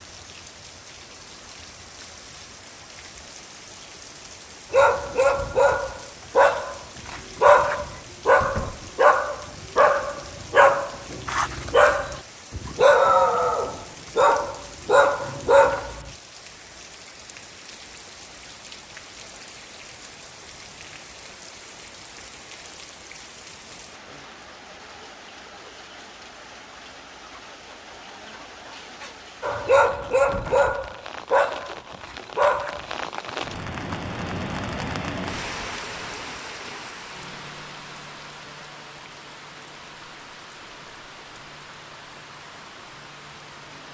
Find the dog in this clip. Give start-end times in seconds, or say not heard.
4.7-16.1, 29.4-33.0.